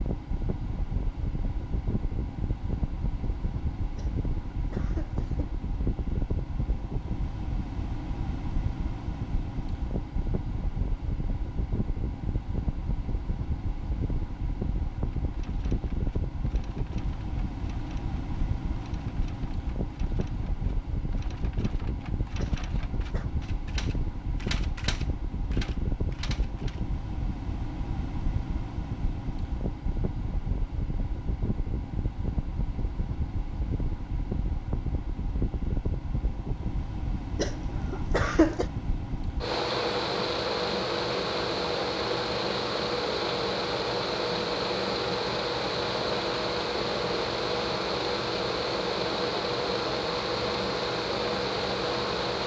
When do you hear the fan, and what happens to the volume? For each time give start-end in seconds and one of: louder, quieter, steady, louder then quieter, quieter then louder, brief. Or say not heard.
0.0-52.4 louder.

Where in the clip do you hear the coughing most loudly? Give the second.
38 s.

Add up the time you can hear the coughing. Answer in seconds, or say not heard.
4 s.